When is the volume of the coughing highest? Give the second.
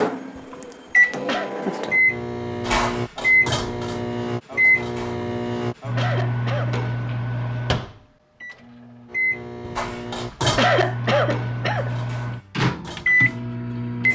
11 s.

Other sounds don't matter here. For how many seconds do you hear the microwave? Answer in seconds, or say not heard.
14 s.